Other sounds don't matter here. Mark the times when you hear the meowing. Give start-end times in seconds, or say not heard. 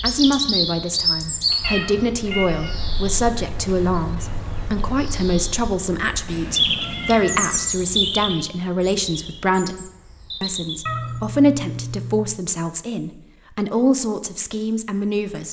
1.5-2.8, 6.2-7.7, 10.8-12.4.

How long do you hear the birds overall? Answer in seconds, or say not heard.
11 s.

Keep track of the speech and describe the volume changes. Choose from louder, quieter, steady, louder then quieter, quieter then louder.
steady.